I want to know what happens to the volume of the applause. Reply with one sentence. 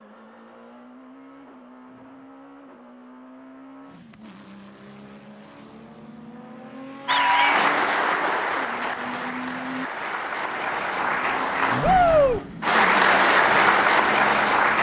The volume of the applause goes down, then up.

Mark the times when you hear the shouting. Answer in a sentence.
The shouting can be heard from 11.8 to 12.4 s.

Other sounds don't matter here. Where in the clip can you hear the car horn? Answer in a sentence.
You can't hear the car horn here.